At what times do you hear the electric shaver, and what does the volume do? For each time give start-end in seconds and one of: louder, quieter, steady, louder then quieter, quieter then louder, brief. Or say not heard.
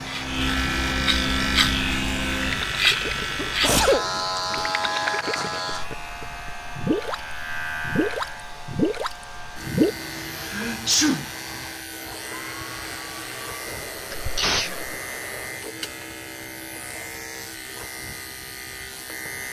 0.0-19.4 quieter.